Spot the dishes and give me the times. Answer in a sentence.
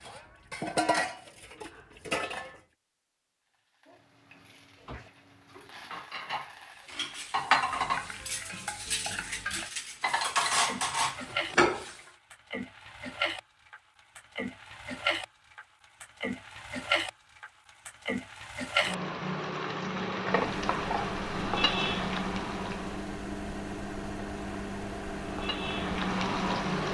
You can hear the dishes from 0.0 to 2.6 s and from 4.8 to 12.0 s.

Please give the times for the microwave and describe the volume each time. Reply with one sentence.
You can hear the microwave from 20.4 to 26.8 s, at a steady volume.